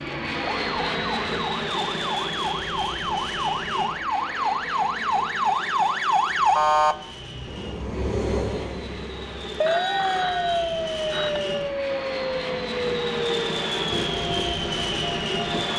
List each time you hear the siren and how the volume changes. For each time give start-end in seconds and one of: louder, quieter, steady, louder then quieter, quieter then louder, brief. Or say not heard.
0.0-15.7 louder then quieter.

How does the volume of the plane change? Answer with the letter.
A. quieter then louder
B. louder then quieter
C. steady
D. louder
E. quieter
A.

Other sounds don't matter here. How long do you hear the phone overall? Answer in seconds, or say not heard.
2 s.